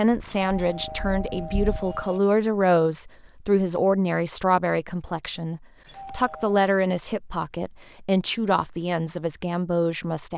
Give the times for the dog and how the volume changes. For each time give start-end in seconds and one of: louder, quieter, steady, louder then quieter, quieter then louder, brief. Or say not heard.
not heard.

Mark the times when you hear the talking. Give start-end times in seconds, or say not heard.
0.0-10.3.